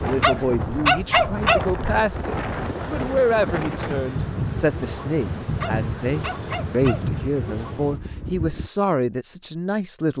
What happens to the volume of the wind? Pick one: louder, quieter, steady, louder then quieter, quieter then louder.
steady.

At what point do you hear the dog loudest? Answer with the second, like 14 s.
1 s.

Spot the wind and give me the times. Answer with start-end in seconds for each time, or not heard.
0.0-8.7.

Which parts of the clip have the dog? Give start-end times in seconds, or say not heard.
0.2-1.6, 5.6-7.0.